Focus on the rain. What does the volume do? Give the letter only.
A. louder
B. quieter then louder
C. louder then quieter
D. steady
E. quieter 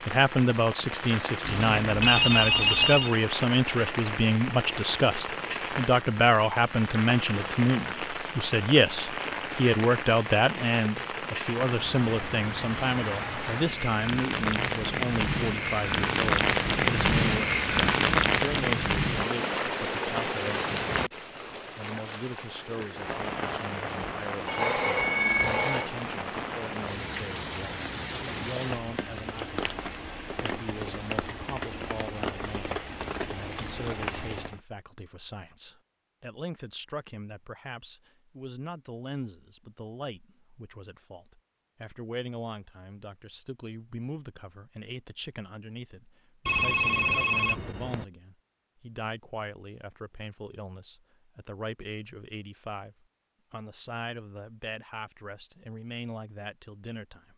C.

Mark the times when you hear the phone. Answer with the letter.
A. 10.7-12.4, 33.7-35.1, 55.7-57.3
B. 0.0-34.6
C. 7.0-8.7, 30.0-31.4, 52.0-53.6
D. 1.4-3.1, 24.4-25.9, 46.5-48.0
D.